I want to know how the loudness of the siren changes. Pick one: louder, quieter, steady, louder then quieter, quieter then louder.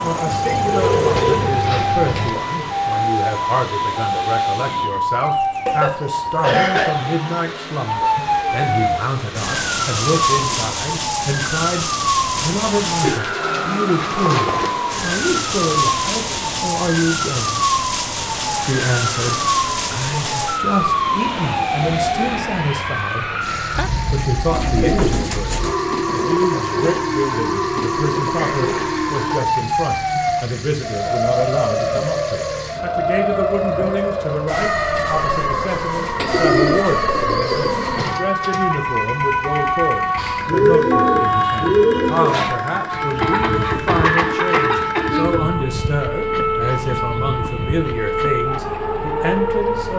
steady.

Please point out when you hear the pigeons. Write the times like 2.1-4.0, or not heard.
0.3-2.3, 13.1-14.8, 24.5-26.4, 36.1-38.1, 40.1-42.5.